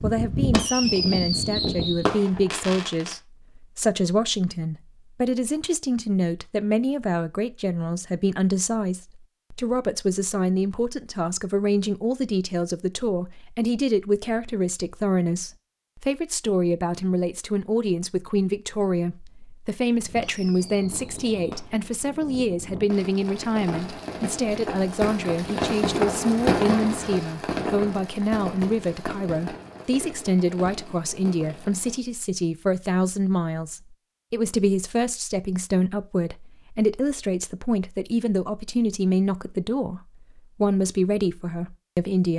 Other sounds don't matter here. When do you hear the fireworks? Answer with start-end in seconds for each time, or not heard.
0.0-3.1, 20.0-32.0.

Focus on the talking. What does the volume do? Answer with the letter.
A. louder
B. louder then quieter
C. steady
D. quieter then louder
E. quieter
C.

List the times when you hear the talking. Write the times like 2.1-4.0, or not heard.
0.0-42.3.